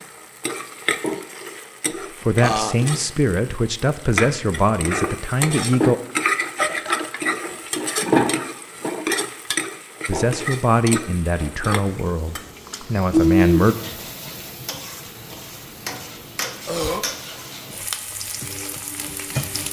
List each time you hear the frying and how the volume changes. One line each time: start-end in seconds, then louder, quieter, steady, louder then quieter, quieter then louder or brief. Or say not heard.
0.0-19.6 louder then quieter.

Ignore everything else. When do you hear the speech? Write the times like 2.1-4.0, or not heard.
2.2-6.0, 10.1-13.8.